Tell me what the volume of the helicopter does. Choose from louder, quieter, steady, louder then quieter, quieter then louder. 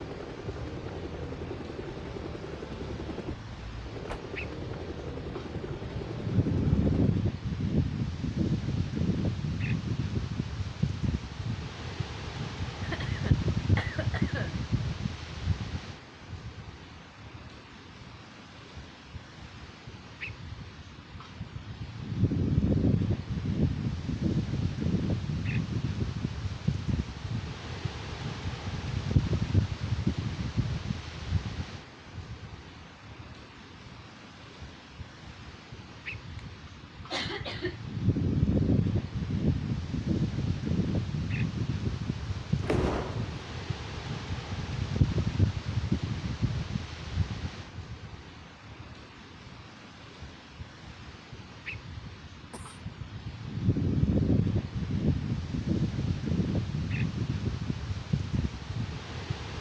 steady.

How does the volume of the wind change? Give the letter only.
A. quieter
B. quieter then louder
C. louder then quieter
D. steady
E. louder
D.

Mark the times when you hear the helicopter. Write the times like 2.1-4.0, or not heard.
0.0-7.2.